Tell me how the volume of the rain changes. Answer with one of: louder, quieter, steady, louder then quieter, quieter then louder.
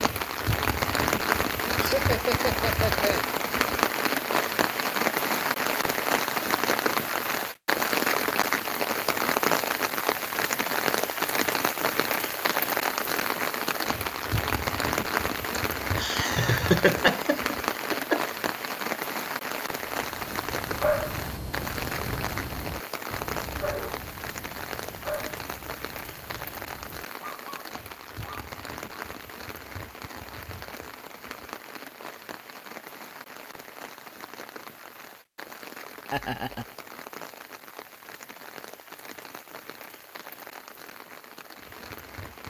quieter.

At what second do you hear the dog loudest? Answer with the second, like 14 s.
21 s.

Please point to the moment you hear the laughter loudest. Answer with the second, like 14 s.
17 s.